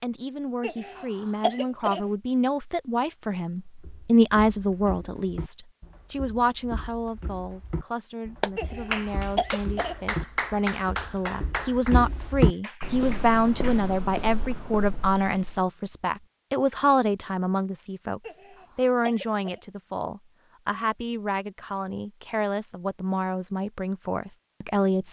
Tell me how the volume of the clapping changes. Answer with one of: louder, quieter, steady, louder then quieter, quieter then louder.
quieter.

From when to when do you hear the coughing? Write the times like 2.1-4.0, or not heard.
0.6-2.0, 8.6-9.9, 18.2-19.6.